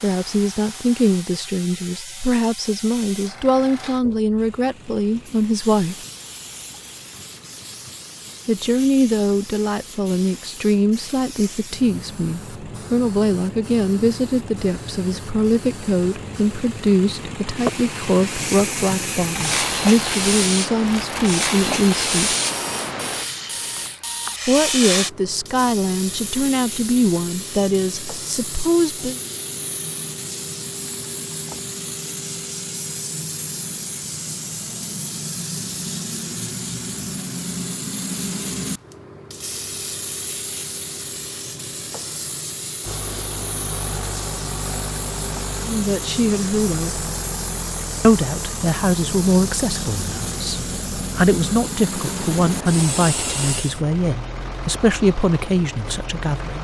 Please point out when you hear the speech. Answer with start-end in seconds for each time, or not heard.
0.0-6.0, 8.4-22.4, 24.4-29.2, 45.6-47.0, 48.0-56.6.